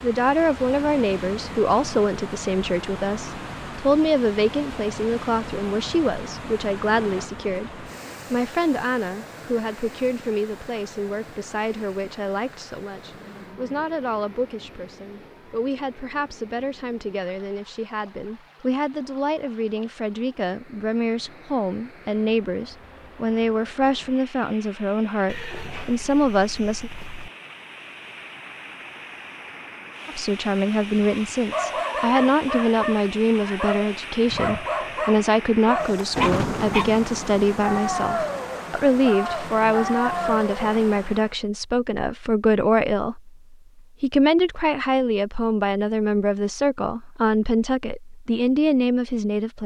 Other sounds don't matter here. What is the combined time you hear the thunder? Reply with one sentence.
You can hear the thunder for 3 seconds altogether.